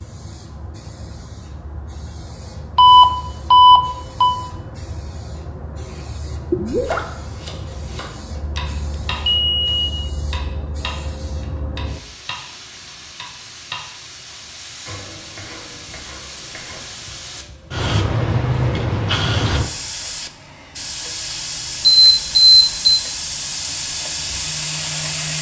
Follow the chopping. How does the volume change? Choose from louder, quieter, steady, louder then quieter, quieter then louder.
quieter.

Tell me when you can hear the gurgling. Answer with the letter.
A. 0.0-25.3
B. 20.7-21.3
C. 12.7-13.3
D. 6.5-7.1
D.